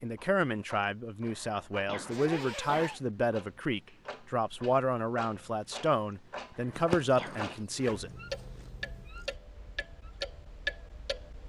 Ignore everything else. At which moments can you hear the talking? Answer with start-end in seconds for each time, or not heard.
0.0-8.1.